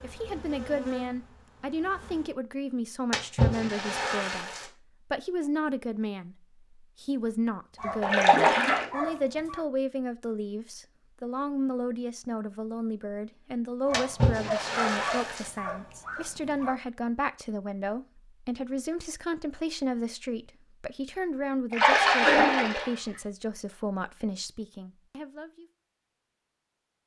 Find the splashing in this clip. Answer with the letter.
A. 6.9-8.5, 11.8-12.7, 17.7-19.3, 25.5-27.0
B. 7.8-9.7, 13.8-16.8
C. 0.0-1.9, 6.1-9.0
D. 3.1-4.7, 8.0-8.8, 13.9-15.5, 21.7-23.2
D.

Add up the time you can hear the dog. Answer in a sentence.
You can hear the dog for 5 seconds altogether.